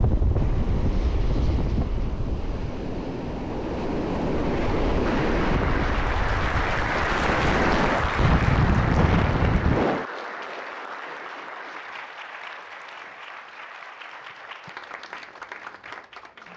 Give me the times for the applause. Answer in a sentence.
The applause can be heard from 5.0 to 16.5 s.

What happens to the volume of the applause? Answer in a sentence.
The volume of the applause goes down.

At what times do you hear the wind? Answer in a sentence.
You can hear the wind from 0.0 to 10.1 s.